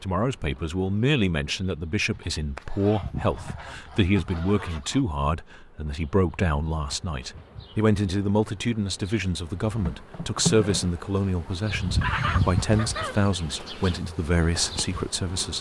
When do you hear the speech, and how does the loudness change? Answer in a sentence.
The speech can be heard from 0.0 to 15.5 s, at a steady volume.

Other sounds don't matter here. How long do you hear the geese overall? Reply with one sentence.
You can hear the geese for 5 seconds altogether.